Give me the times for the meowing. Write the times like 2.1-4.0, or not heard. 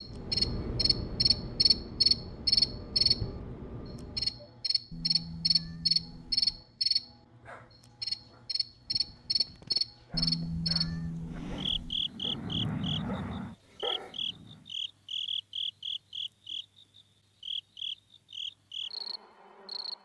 4.9-6.7, 10.1-12.1.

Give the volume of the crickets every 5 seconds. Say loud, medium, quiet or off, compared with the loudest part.
loud, loud, medium, medium.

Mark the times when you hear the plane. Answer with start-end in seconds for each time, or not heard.
0.0-4.5, 11.3-14.8.